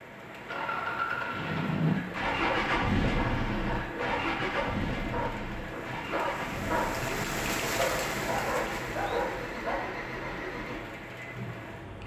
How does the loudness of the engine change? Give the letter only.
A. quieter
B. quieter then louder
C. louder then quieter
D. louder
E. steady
A.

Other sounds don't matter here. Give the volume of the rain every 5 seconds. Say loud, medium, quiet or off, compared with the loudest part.
medium, loud, medium.